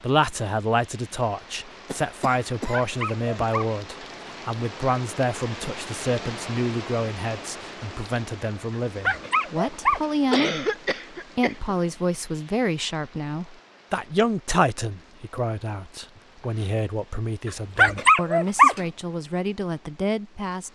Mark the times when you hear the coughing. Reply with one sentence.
You can hear the coughing from 1.9 to 3.5 s, from 10.3 to 11.8 s and from 16.1 to 16.7 s.